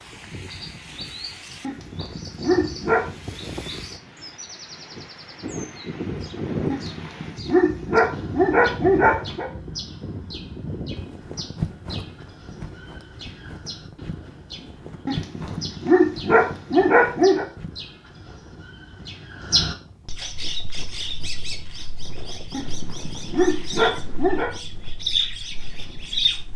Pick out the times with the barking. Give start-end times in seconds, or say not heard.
1.6-3.1, 6.7-9.5, 15.1-17.4, 22.5-24.5.